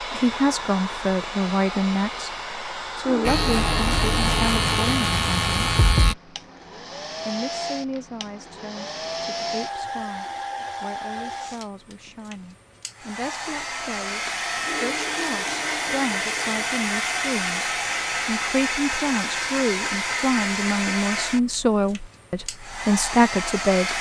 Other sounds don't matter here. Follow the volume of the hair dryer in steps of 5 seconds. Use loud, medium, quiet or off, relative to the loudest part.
medium, medium, medium, loud, loud.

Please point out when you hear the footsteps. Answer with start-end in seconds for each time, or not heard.
not heard.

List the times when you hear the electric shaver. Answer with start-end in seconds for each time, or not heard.
3.2-6.2.